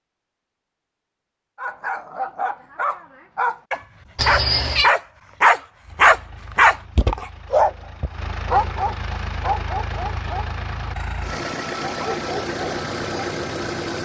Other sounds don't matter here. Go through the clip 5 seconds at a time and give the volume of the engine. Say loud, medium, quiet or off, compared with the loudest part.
off, medium, loud.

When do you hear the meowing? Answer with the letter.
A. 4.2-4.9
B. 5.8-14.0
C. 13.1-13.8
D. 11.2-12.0
A.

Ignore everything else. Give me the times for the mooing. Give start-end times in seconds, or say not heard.
not heard.